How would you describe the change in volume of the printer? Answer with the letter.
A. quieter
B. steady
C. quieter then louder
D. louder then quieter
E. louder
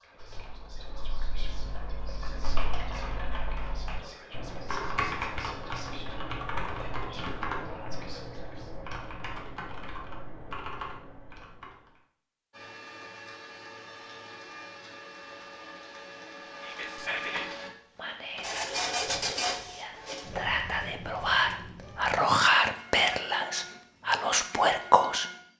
D.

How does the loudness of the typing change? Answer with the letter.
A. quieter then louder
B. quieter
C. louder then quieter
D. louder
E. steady
C.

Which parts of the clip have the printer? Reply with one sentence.
The printer can be heard from 12.5 to 25.5 s.